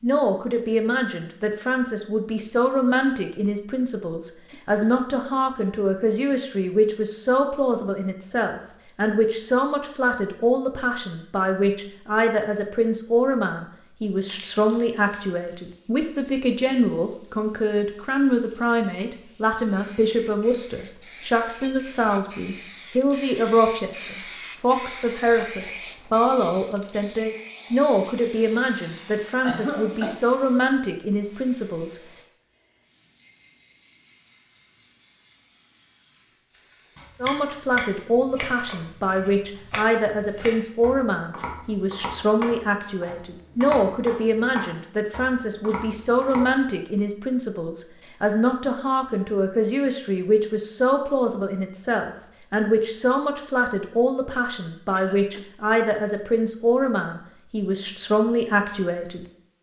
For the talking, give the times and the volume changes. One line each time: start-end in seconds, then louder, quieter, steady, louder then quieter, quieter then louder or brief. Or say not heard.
0.0-31.9 steady
37.2-59.2 steady.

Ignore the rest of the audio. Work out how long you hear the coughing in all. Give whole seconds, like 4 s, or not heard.
2 s.